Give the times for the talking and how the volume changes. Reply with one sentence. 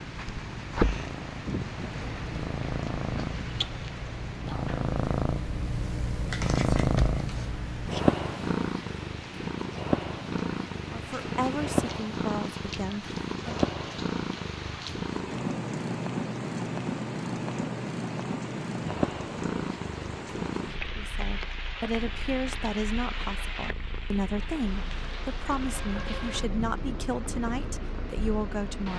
You can hear the talking briefly from 10.9 to 13.6 s; and from 20.9 to 28.9 s, at a steady volume.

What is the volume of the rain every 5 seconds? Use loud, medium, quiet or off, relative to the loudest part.
loud, medium, loud, loud, loud, loud.